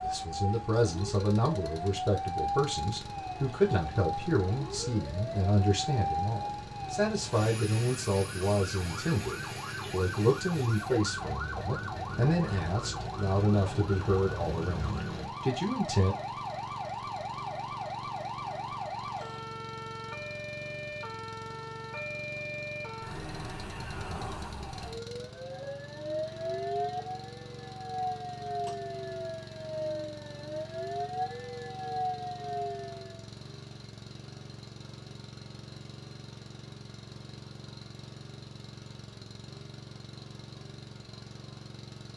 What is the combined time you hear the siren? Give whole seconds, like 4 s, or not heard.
33 s.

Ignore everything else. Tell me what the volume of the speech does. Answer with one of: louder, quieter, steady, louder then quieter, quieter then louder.
steady.